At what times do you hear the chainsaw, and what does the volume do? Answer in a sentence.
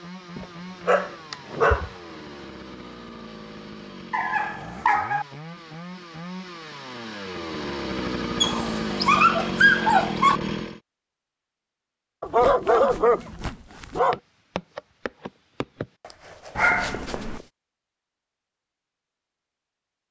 You can hear the chainsaw from 0.0 to 10.8 s, getting louder.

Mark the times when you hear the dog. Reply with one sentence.
You can hear the dog from 0.3 to 1.9 s, from 4.1 to 5.2 s, from 8.4 to 10.4 s, from 12.2 to 14.2 s and from 16.6 to 17.4 s.